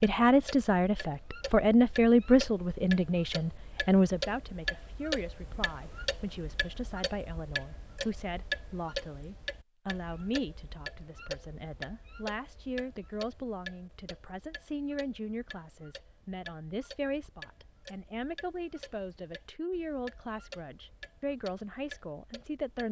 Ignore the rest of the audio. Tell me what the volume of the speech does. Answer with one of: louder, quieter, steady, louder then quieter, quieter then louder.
quieter.